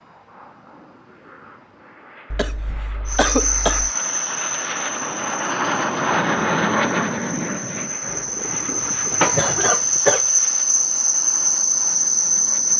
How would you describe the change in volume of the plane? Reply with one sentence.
The loudness of the plane goes up, then down.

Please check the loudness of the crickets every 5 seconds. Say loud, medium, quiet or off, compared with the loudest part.
medium, medium, loud.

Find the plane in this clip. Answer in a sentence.
The plane can be heard from 0.0 to 12.7 s.